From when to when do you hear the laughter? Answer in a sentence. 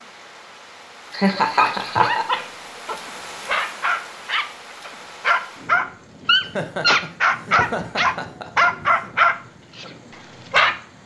You can hear the laughter from 1.1 to 2.2 s and from 6.4 to 9.2 s.